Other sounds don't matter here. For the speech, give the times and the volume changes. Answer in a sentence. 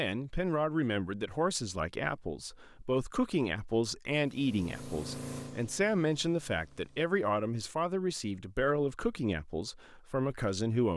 The speech can be heard from 0.0 to 10.9 s, at a steady volume.